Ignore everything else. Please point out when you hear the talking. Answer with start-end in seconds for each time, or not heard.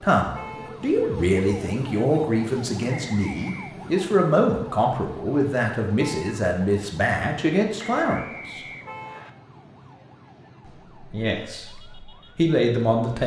0.0-8.6, 10.7-13.2.